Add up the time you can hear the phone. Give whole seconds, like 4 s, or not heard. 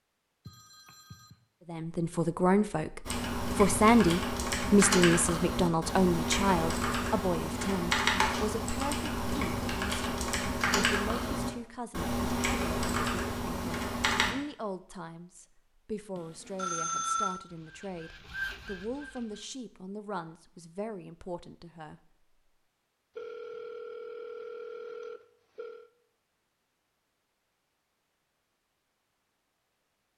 5 s.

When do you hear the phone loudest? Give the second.
17 s.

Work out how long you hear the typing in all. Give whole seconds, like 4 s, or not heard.
11 s.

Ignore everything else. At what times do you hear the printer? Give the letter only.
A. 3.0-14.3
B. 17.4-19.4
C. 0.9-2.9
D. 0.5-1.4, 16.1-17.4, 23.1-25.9
B.